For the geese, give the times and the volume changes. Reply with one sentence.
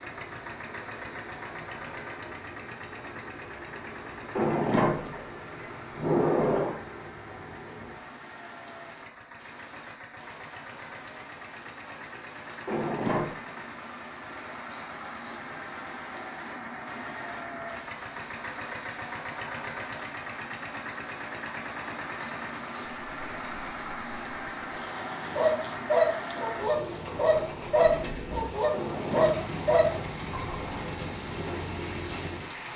The geese can be heard from 25.4 to 30.8 s, at a steady volume.